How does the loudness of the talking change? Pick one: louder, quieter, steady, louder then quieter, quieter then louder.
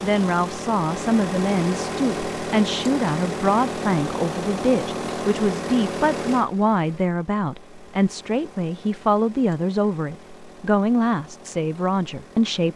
steady.